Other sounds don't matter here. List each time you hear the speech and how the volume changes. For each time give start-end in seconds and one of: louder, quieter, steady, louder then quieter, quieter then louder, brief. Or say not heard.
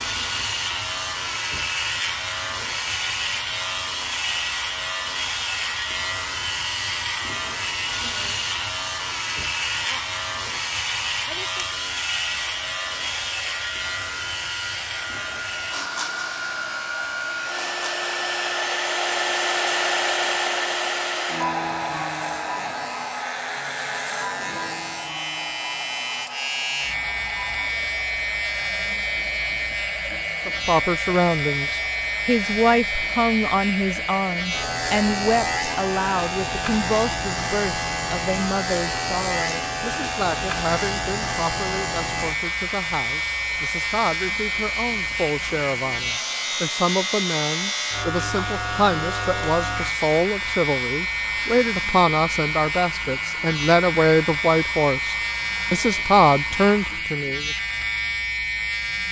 30.4-57.5 quieter then louder.